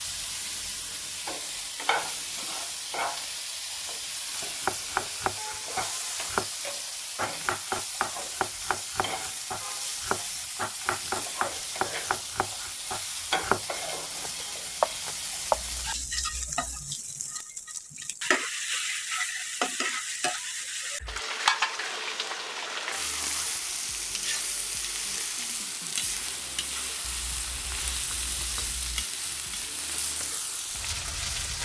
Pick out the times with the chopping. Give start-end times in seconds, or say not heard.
4.3-15.8.